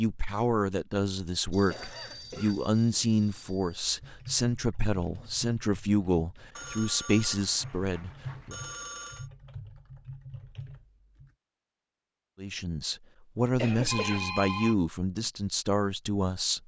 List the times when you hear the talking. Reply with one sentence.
You can hear the talking from 0.0 to 8.6 s and from 12.3 to 16.6 s.